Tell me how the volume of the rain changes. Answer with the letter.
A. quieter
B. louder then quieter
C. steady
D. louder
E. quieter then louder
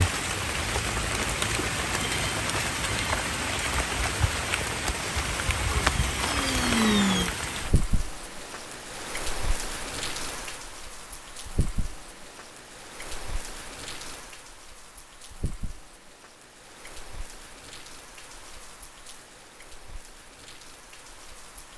A.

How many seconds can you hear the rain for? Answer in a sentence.
You can hear the rain for 22 seconds altogether.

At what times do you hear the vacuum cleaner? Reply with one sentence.
You can hear the vacuum cleaner from 4.9 to 7.3 s.